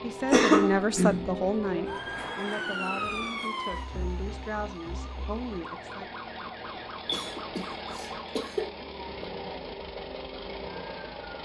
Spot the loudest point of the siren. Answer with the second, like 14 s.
3 s.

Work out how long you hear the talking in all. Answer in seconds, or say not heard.
6 s.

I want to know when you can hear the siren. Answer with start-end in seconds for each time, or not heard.
0.0-11.4.